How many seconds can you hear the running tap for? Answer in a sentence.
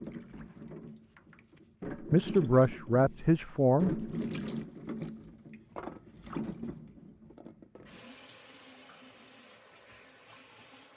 You can hear the running tap for 11 seconds altogether.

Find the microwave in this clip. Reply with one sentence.
The microwave can't be heard in this clip.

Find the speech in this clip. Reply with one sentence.
The speech can be heard from 2.1 to 4.0 s.